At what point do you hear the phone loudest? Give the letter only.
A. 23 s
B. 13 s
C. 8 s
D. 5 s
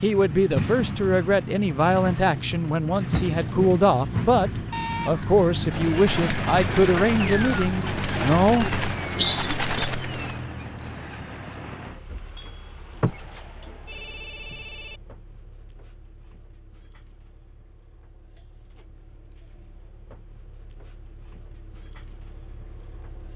B.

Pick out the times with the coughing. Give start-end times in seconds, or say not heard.
9.2-9.9.